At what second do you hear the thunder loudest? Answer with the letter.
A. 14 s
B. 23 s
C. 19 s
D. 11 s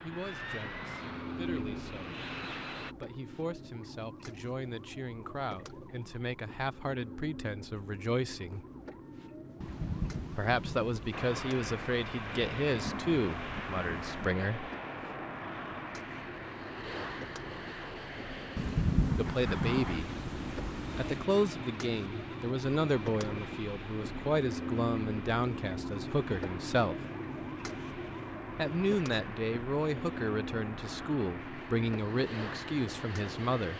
C.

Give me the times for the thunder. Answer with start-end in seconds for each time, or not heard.
9.6-14.3, 18.6-21.2.